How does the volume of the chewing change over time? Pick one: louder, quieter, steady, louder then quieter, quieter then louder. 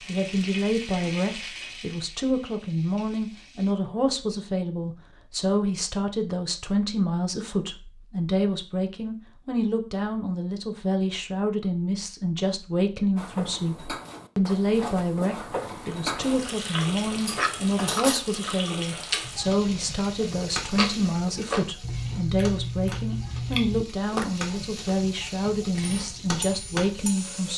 steady.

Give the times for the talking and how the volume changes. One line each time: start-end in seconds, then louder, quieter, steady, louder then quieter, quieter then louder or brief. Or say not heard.
0.1-27.5 steady.